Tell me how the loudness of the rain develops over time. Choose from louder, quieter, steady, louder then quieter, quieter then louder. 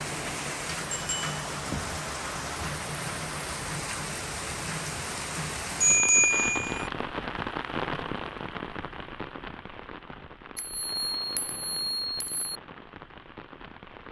quieter.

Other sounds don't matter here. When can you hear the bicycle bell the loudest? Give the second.
6 s.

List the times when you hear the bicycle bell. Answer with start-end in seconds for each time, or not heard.
0.9-1.4, 5.8-6.9, 10.6-12.6.